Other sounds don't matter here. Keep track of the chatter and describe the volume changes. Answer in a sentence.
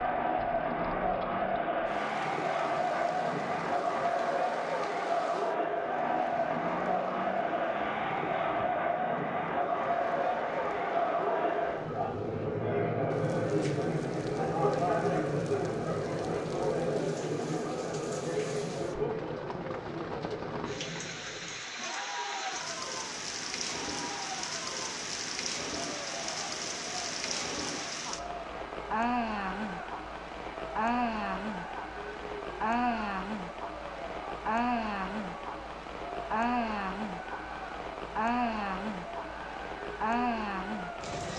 The volume of the chatter goes down.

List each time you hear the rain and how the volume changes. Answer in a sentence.
The rain can be heard from 0.0 to 41.3 s, getting louder.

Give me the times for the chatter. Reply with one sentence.
The chatter can be heard from 0.0 to 41.2 s.